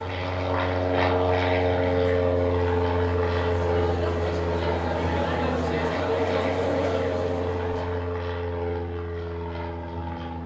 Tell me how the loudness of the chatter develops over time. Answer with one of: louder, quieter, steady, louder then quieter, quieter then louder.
louder.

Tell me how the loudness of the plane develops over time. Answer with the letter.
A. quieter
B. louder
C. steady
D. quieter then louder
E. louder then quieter
A.